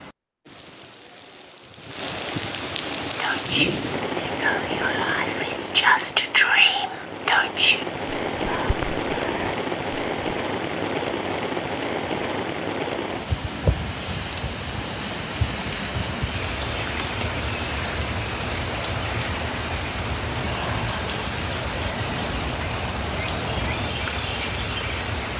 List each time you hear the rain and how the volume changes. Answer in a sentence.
You can hear the rain from 0.0 to 25.3 s, at a steady volume.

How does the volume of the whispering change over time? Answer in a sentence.
The volume of the whispering goes up, then down.